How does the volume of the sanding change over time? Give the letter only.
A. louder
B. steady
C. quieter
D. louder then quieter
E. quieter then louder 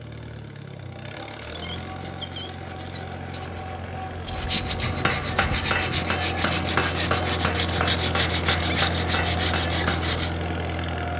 A.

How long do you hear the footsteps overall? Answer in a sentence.
The footsteps can't be heard in this clip.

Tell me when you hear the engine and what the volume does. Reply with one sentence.
The engine can be heard from 0.0 to 11.1 s, getting louder.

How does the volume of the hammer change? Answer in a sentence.
The volume of the hammer stays about the same.